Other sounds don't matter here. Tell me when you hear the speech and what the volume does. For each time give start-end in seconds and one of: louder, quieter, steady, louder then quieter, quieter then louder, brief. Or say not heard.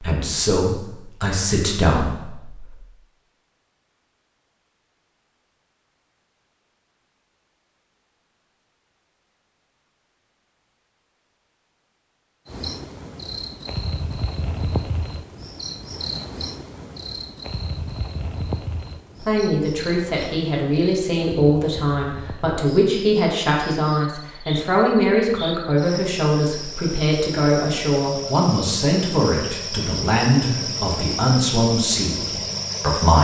0.0-2.8 brief
19.2-33.1 steady.